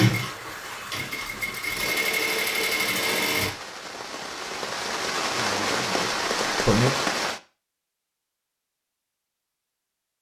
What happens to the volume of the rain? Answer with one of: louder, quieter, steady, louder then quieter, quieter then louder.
louder.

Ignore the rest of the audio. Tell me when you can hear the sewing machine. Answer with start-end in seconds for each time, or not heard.
0.0-3.5.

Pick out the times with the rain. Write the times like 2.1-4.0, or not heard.
0.0-7.4.